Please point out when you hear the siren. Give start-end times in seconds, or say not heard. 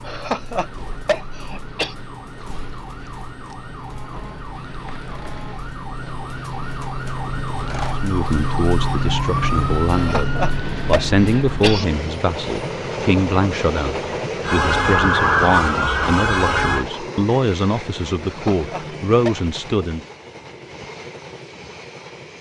0.0-11.8, 14.4-16.9.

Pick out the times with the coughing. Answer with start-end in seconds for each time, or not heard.
0.1-1.9, 9.8-11.8, 18.2-19.4.